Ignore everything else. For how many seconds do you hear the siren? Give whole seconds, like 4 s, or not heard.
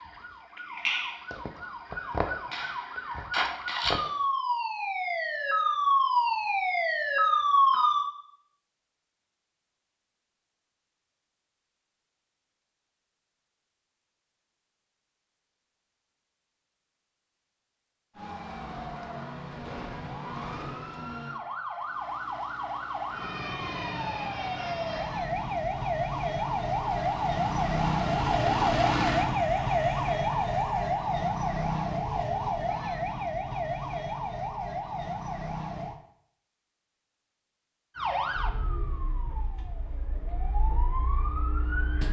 30 s.